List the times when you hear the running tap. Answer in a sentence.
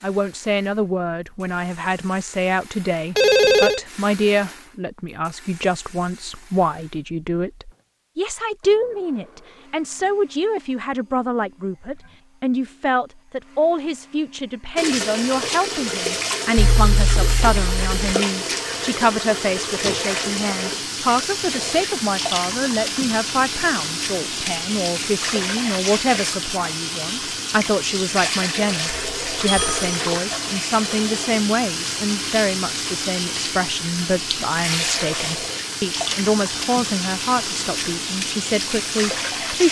You can hear the running tap from 14.8 to 39.6 s.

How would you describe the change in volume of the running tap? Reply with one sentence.
The loudness of the running tap stays about the same.